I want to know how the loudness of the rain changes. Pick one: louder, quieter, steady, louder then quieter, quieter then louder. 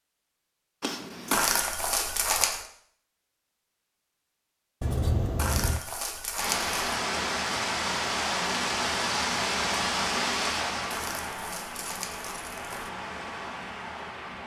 quieter.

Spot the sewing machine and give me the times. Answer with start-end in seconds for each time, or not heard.
not heard.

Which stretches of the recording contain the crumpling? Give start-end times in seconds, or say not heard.
1.3-2.6, 5.3-6.8, 10.9-12.9.